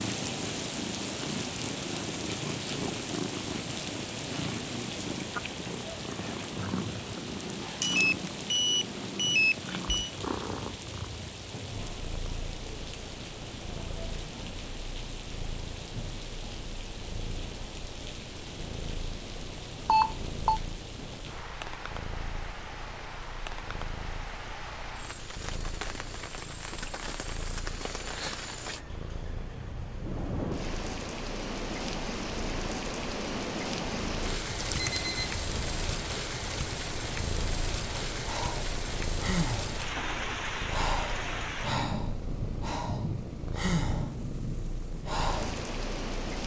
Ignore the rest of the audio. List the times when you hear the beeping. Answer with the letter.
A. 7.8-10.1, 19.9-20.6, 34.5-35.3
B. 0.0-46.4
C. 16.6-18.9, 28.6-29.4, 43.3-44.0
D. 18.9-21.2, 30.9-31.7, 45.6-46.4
A.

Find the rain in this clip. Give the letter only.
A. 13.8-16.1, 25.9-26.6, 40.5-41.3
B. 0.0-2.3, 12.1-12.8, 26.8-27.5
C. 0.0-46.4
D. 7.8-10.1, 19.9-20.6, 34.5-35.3
C.